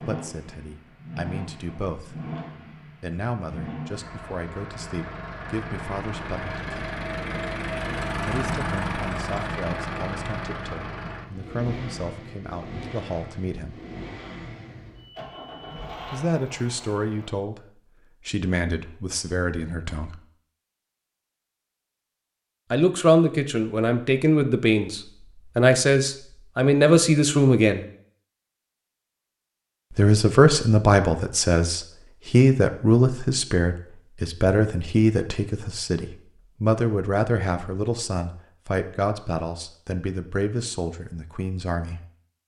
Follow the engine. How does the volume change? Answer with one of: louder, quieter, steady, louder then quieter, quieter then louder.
louder then quieter.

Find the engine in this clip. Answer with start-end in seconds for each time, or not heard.
0.0-17.4.